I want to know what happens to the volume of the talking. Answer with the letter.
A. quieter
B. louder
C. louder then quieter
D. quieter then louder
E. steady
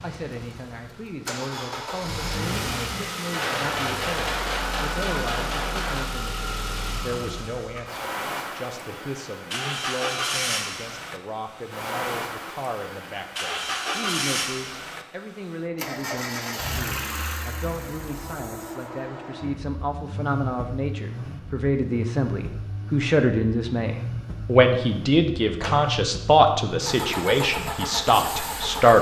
B.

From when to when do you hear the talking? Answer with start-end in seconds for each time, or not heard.
0.0-28.9.